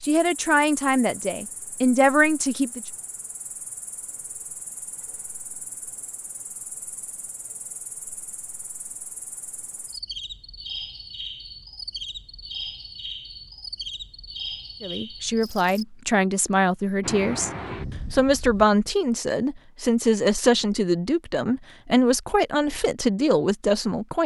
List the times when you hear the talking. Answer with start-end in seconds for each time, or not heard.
0.0-2.8, 14.8-17.5, 18.1-24.2.